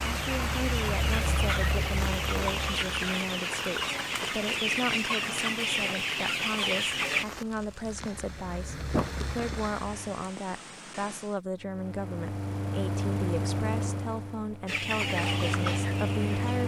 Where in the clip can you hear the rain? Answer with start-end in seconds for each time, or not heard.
0.0-11.4.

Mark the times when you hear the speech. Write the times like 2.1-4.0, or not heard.
0.0-16.6.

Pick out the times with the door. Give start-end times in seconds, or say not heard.
8.9-9.6.